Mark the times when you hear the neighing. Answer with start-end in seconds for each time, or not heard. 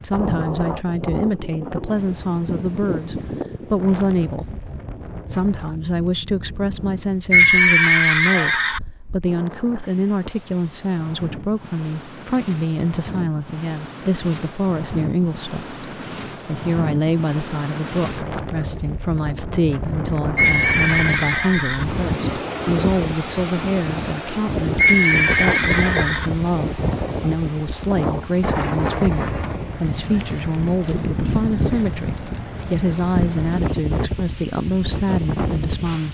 7.3-8.8, 20.4-21.9, 24.8-26.3.